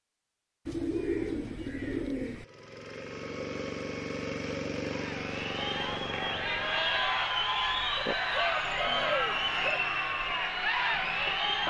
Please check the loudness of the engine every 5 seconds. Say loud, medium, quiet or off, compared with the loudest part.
loud, loud, off.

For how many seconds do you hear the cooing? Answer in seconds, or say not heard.
4 s.